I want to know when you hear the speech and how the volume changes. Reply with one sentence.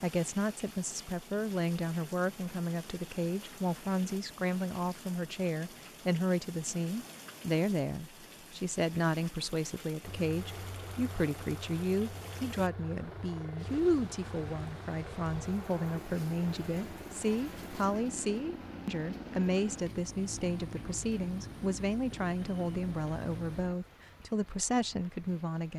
You can hear the speech from 0.0 to 25.7 s, at a steady volume.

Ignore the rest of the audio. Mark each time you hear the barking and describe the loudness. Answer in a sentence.
The barking can't be heard in this clip.